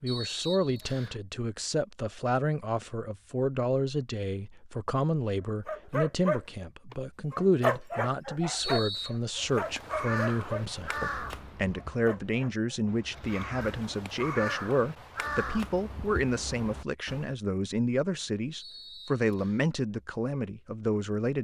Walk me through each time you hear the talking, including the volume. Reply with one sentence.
You can hear the talking from 0.0 to 21.3 s, at a steady volume.